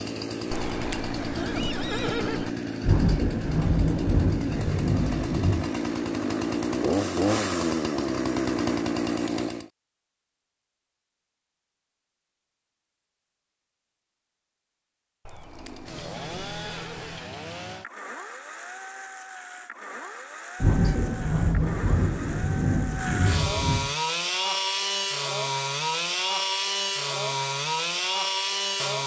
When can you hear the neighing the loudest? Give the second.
2 s.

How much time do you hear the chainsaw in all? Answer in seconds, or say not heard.
23 s.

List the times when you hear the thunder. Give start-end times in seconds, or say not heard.
2.8-5.7, 20.6-23.9.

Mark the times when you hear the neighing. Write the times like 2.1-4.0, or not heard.
0.5-2.5, 15.2-17.2.